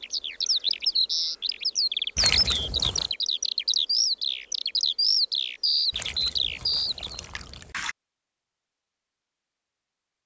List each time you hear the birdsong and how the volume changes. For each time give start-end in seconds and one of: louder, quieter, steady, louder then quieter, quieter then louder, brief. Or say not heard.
0.0-7.2 steady.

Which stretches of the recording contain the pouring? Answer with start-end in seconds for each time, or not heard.
2.1-3.1, 5.9-8.0.